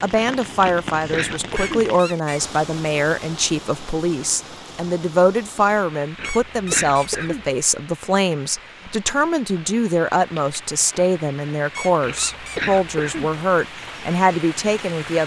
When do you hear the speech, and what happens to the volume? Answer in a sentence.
The speech can be heard from 0.0 to 15.2 s, at a steady volume.